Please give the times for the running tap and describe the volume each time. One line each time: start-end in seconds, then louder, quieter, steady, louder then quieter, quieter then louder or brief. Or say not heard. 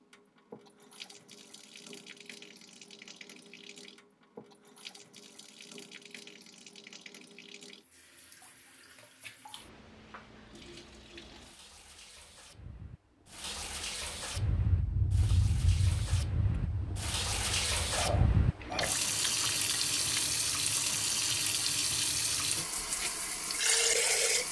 0.0-24.4 louder.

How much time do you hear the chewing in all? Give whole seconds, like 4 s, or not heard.
6 s.